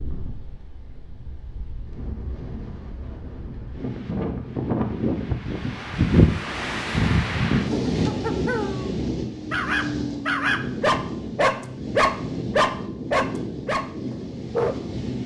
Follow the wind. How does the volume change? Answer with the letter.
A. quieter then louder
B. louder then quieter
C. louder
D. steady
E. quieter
B.